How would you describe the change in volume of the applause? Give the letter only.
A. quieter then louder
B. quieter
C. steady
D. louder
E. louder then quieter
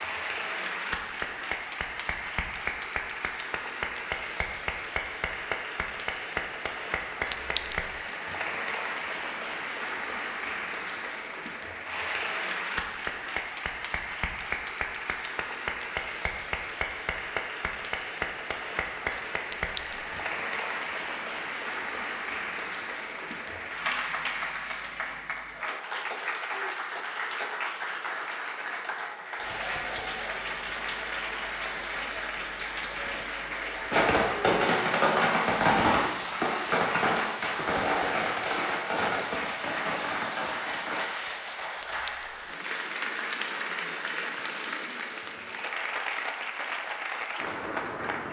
C.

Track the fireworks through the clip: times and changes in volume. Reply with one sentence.
The fireworks can be heard from 33.9 to 41.1 s, getting quieter.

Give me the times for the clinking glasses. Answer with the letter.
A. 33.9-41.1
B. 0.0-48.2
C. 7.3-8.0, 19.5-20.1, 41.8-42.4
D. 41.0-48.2
C.